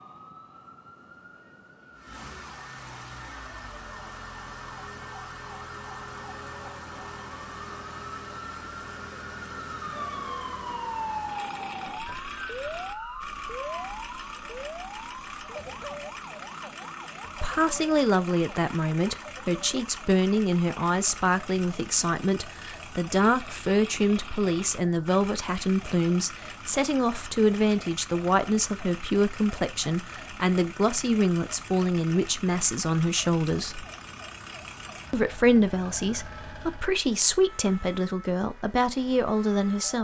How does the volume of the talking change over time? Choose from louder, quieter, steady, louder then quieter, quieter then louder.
steady.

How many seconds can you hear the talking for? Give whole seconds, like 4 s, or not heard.
21 s.